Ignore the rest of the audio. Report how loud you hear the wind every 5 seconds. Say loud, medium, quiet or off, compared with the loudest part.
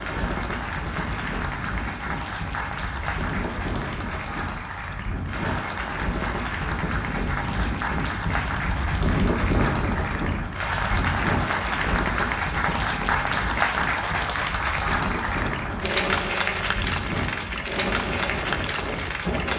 medium, loud, loud, loud.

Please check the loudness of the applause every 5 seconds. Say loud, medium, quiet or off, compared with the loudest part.
medium, medium, loud, loud.